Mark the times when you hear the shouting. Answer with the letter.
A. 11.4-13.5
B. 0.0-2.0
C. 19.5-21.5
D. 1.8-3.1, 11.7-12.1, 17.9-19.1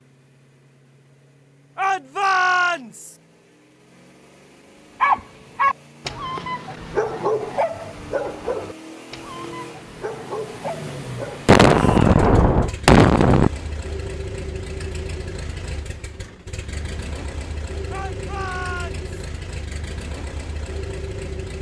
D.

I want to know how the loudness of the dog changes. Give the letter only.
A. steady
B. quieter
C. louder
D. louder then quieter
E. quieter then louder
E.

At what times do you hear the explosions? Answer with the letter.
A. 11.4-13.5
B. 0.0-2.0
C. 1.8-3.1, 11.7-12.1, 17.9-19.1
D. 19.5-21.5
A.